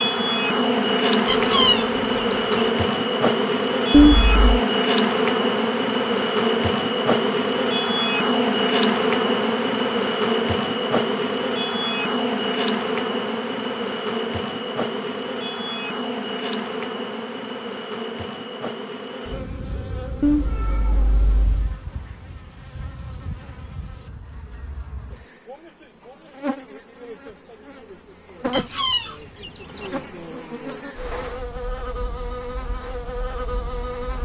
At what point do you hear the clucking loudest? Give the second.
2 s.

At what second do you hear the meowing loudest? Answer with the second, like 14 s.
4 s.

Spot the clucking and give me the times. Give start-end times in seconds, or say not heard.
1.2-2.7, 28.5-29.9.